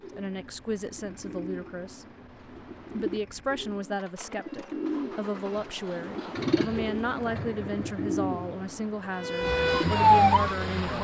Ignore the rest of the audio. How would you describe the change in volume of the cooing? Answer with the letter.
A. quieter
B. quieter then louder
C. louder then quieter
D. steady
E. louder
E.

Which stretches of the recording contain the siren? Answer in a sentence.
The siren can be heard from 9.2 to 10.9 s.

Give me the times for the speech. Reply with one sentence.
You can hear the speech from 0.1 to 2.0 s and from 3.0 to 10.9 s.